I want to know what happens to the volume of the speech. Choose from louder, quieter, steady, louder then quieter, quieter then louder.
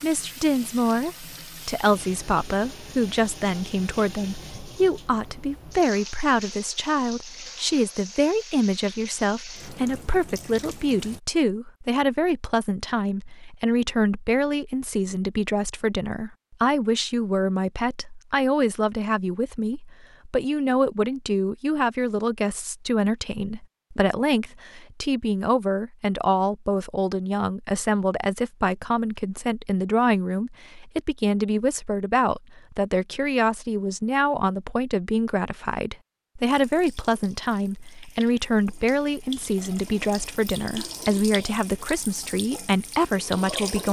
steady.